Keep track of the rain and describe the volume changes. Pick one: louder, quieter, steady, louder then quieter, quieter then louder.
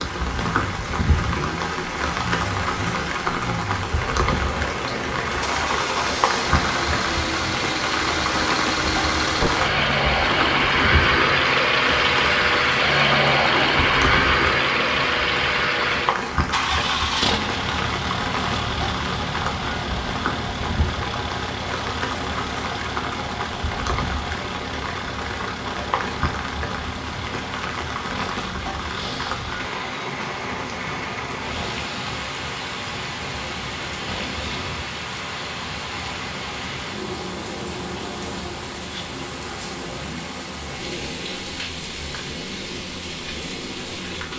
quieter.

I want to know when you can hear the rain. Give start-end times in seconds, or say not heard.
0.0-44.3.